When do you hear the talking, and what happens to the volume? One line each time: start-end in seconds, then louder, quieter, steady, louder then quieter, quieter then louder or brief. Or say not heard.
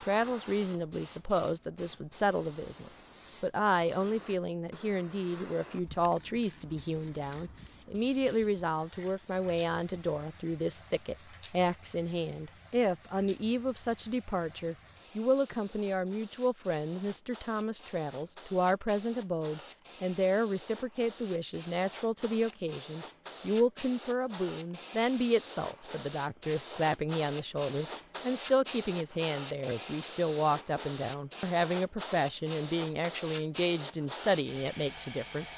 0.0-35.5 steady.